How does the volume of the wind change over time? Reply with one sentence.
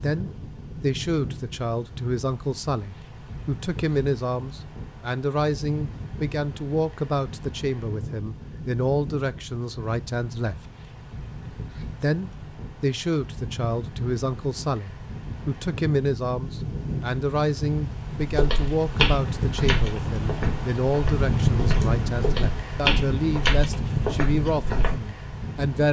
The volume of the wind goes up.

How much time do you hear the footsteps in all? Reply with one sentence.
You can hear the footsteps for 7 seconds altogether.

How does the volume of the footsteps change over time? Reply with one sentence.
The loudness of the footsteps goes down, then up.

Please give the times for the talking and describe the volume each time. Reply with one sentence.
You can hear the talking from 0.0 to 10.7 s, at a steady volume; and from 12.0 to 25.8 s, at a steady volume.